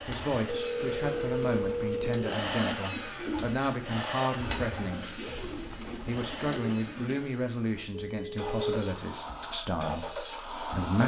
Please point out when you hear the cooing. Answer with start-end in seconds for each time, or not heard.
0.0-7.3.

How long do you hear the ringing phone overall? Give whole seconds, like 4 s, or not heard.
3 s.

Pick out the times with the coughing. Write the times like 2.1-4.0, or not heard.
not heard.